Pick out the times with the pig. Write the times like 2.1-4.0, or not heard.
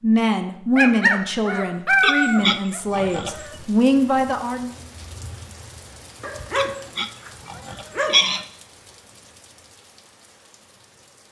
2.0-3.5, 6.5-8.4.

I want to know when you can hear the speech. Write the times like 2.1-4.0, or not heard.
0.0-4.7.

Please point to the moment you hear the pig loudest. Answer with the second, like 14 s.
8 s.